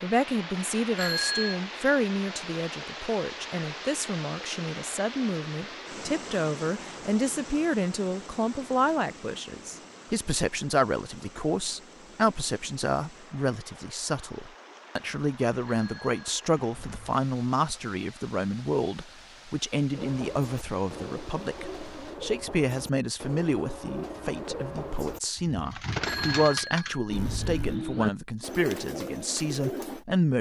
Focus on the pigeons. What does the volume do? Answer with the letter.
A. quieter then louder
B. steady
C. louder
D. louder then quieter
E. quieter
C.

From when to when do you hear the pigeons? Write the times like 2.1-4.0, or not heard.
19.9-30.1.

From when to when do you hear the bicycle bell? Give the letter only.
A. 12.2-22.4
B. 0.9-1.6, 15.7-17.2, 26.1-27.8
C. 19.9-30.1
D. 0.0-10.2
B.